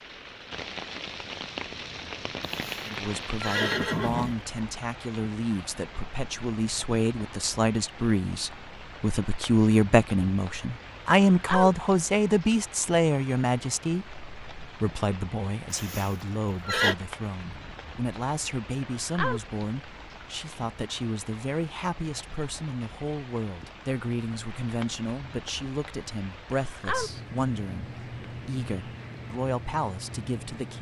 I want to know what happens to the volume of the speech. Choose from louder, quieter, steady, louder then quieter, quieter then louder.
louder then quieter.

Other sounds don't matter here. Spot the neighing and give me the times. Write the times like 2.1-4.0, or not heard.
2.5-4.3, 15.7-16.9.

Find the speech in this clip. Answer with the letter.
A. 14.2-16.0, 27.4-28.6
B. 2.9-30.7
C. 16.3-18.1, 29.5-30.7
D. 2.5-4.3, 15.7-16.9
B.